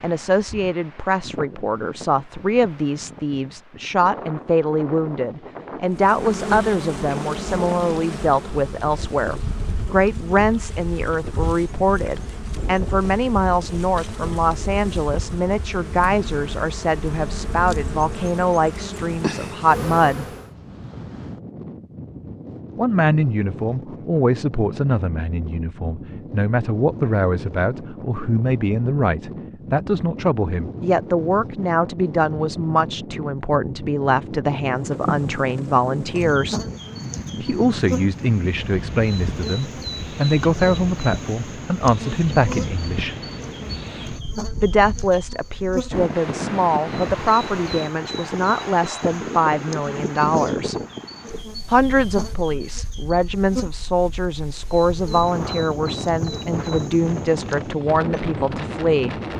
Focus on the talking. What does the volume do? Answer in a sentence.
The loudness of the talking stays about the same.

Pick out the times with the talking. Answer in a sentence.
The talking can be heard from 0.0 to 20.2 s, from 22.8 to 36.6 s, from 37.4 to 43.1 s, from 44.6 to 50.8 s and from 51.7 to 59.1 s.